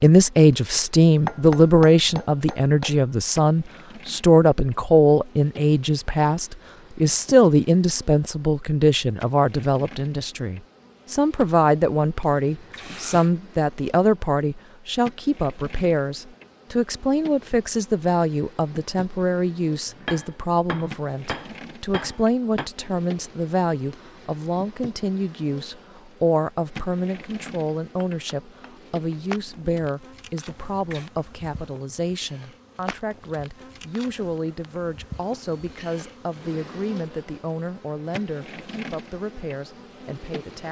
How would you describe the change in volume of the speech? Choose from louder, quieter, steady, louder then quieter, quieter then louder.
quieter.